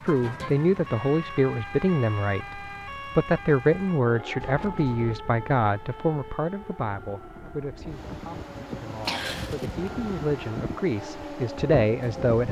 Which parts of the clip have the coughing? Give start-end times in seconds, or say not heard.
9.1-9.8.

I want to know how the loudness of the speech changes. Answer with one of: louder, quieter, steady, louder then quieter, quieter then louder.
quieter then louder.